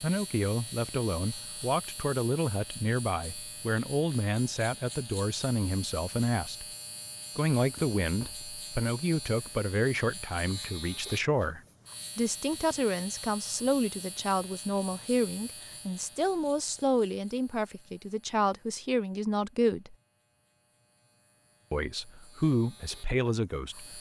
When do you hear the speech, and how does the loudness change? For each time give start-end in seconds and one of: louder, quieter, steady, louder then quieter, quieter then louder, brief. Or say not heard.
0.0-6.7 steady
7.3-19.9 steady
21.7-23.9 brief.